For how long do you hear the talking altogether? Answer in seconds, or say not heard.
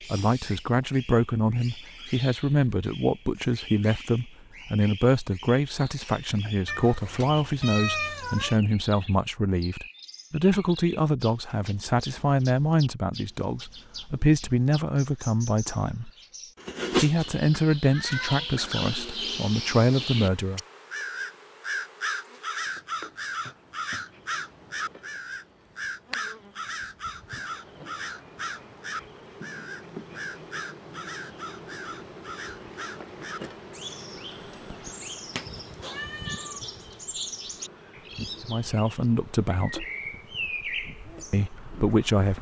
22 s.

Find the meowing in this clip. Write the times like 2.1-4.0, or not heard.
6.7-8.6, 16.6-18.4, 35.4-36.5.